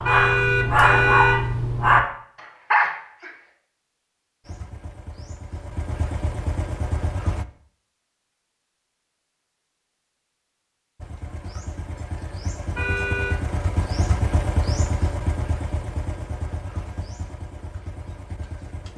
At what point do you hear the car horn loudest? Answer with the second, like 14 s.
1 s.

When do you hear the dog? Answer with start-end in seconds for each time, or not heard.
0.0-3.3.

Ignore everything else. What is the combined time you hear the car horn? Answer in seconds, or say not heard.
2 s.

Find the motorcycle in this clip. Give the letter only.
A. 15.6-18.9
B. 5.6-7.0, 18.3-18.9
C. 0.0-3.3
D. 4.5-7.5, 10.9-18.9
D.